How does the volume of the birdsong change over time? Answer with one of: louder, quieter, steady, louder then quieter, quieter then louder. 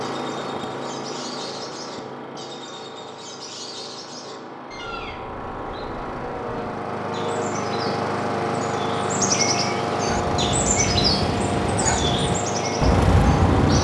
louder.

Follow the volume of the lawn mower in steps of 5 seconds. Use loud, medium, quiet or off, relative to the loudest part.
medium, loud, loud.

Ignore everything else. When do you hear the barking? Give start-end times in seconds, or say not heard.
10.1-13.7.